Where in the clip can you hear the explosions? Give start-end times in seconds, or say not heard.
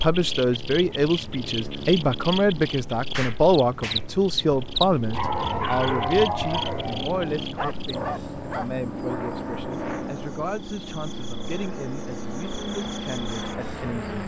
3.1-4.0.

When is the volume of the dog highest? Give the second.
6 s.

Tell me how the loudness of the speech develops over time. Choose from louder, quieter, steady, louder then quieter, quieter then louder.
quieter.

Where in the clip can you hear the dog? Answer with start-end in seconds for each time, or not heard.
5.1-8.7.